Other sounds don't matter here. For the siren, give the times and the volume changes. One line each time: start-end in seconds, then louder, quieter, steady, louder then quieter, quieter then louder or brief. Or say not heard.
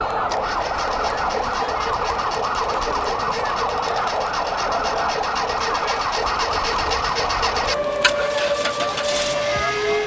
0.0-10.0 steady.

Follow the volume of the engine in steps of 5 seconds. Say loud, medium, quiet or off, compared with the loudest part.
medium, loud.